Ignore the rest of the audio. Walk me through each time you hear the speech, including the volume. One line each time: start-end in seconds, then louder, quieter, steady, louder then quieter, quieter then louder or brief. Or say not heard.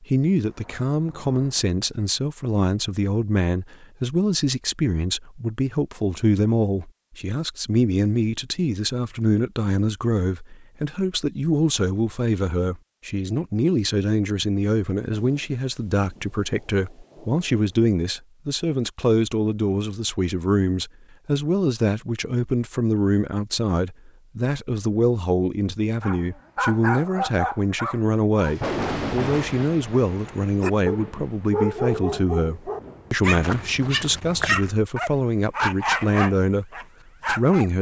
0.0-37.7 steady.